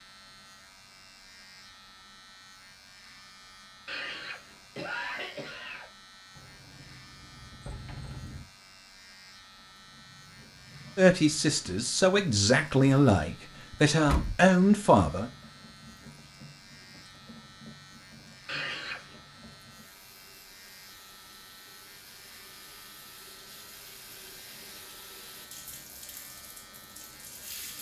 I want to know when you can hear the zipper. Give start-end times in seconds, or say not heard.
not heard.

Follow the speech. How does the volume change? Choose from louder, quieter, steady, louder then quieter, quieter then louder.
louder.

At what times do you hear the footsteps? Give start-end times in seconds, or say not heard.
not heard.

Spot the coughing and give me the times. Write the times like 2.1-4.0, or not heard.
3.9-5.9, 18.4-19.2.